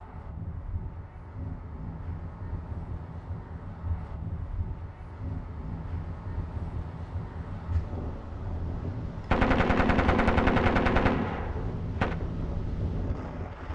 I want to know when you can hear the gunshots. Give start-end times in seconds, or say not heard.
9.3-12.2.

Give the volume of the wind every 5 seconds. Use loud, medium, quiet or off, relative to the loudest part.
medium, loud, loud.